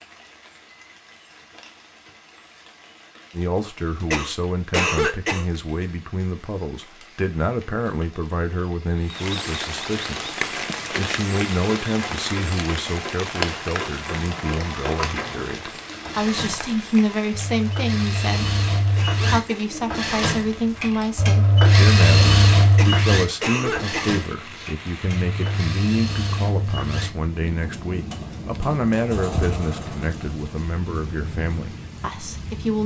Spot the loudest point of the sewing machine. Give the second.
22 s.